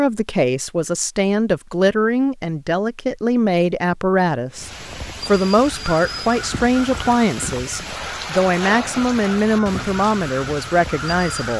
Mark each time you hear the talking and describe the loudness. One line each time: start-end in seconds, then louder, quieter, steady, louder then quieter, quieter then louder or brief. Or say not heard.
0.0-11.5 steady.